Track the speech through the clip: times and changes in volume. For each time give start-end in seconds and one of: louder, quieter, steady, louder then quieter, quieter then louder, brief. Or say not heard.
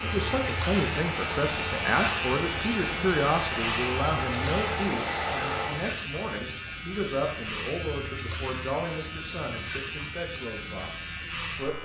0.0-11.8 quieter.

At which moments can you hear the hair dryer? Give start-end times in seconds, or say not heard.
0.0-5.8.